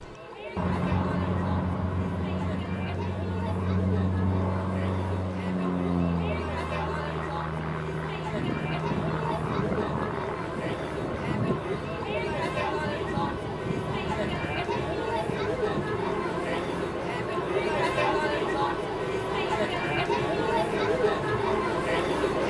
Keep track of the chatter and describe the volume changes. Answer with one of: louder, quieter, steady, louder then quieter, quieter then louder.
louder.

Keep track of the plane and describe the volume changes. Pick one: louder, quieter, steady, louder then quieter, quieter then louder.
quieter.